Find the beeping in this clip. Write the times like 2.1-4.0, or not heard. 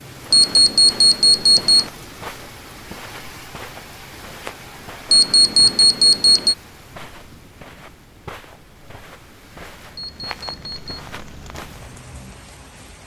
0.3-1.9, 5.1-6.5, 9.9-10.8.